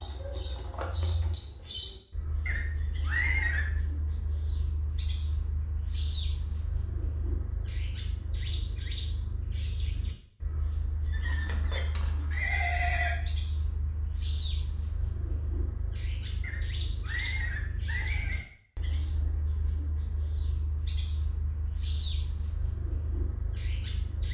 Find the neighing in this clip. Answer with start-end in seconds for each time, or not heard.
2.5-3.7, 11.1-13.2, 16.4-18.4.